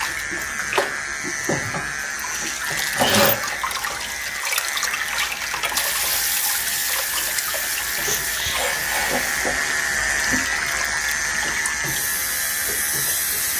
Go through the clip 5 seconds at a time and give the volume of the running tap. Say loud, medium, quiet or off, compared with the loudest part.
loud, loud, medium.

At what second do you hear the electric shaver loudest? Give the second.
10 s.